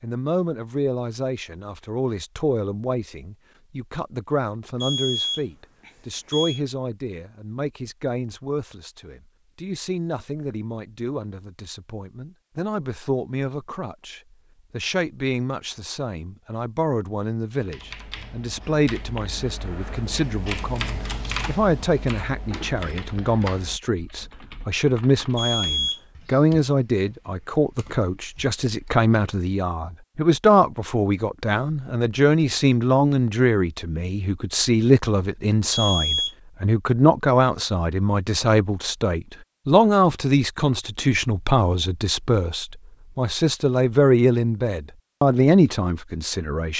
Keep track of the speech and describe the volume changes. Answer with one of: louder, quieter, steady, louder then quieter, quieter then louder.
louder.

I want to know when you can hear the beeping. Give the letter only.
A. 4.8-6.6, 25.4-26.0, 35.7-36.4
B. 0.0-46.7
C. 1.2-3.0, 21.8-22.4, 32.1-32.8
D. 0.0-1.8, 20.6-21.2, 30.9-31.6
A.